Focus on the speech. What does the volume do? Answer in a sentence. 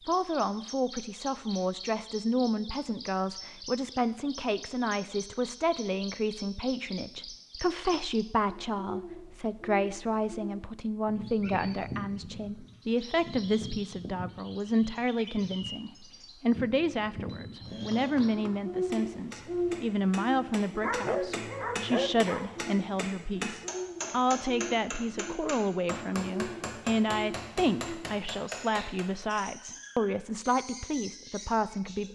The volume of the speech stays about the same.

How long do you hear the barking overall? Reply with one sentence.
The barking can be heard for 2 seconds in total.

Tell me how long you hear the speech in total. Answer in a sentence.
The speech can be heard for 32 seconds in total.